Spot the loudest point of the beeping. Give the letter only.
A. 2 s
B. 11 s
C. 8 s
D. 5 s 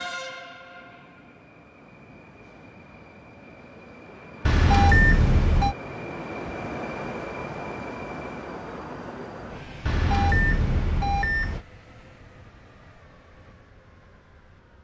D.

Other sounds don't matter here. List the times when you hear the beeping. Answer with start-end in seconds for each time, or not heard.
4.5-5.8, 9.8-11.6.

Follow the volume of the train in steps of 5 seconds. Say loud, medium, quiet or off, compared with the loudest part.
medium, loud, quiet.